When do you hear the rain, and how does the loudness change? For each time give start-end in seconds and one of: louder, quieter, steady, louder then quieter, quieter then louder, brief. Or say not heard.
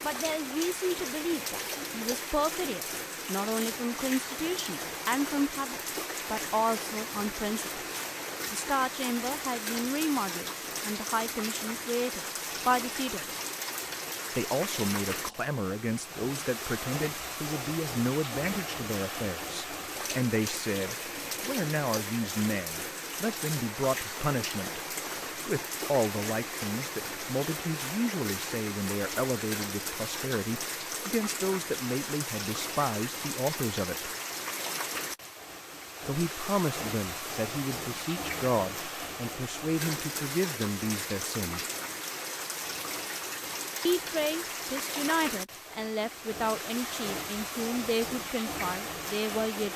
0.0-49.7 steady.